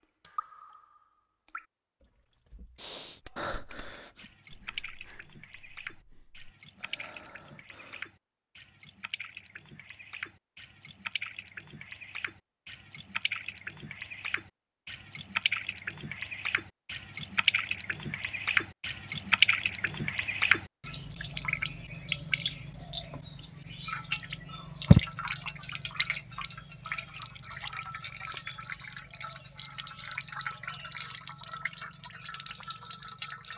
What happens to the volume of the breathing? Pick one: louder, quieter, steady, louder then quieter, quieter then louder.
quieter then louder.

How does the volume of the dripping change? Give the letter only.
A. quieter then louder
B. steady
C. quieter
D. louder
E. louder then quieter
E.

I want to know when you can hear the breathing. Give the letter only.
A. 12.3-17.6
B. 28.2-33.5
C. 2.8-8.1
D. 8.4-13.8
C.